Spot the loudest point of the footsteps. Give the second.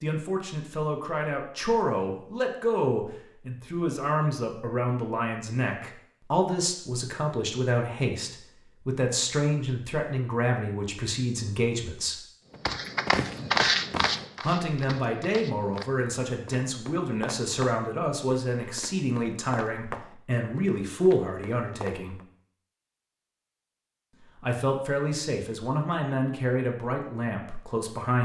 14 s.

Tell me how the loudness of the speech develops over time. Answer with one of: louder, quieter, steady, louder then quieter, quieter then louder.
steady.